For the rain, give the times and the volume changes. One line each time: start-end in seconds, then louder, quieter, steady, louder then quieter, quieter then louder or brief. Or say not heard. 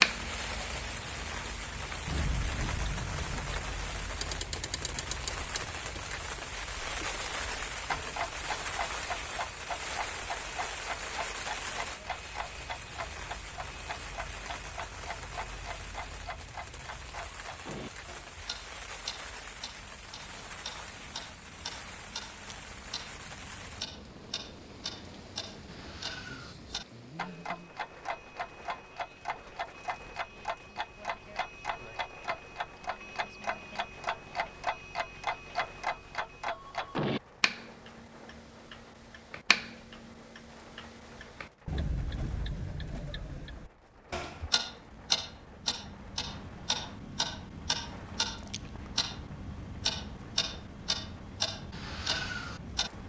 0.0-53.0 quieter.